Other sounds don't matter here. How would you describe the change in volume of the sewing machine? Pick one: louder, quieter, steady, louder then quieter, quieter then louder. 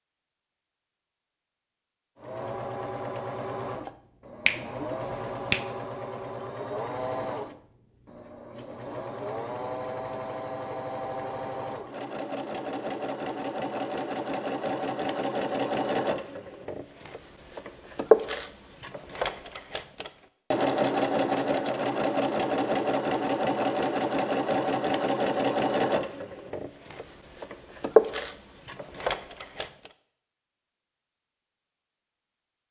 louder.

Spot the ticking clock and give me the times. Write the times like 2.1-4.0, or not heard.
not heard.